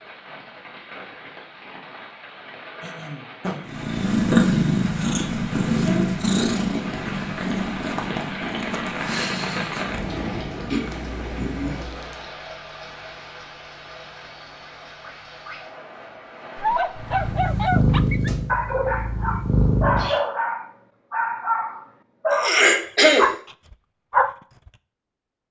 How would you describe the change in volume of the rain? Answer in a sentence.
The loudness of the rain goes up, then down.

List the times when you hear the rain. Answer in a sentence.
The rain can be heard from 0.0 to 17.4 s.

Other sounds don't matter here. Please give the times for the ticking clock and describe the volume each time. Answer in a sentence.
The ticking clock can't be heard in this clip.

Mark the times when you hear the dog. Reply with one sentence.
You can hear the dog from 16.6 to 24.8 s.